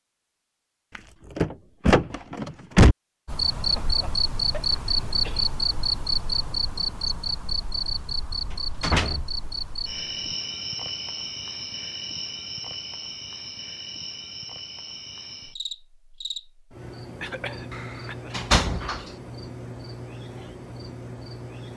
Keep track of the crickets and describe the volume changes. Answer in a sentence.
The volume of the crickets goes down.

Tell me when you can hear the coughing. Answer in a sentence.
You can hear the coughing from 3.5 to 5.5 s and from 17.2 to 18.3 s.